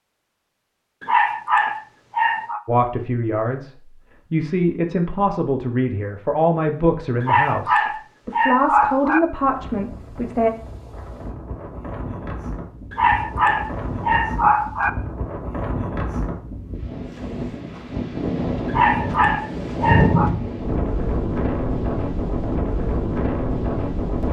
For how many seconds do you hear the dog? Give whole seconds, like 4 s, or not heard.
7 s.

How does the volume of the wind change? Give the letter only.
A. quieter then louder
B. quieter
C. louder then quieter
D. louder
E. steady
D.